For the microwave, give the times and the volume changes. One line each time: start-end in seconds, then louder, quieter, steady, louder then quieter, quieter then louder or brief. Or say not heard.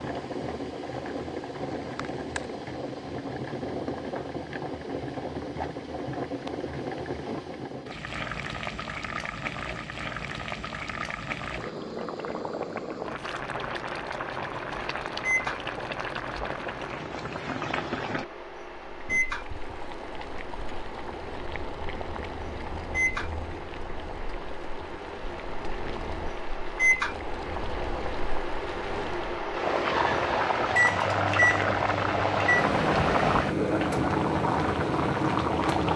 13.2-35.9 louder.